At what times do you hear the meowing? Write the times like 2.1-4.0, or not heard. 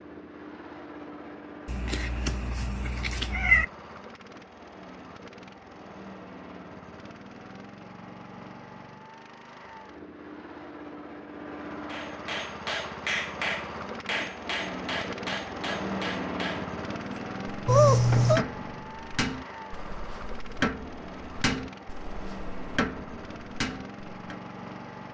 1.6-3.6, 17.6-18.4.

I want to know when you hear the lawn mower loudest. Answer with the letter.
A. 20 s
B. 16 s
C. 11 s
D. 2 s
B.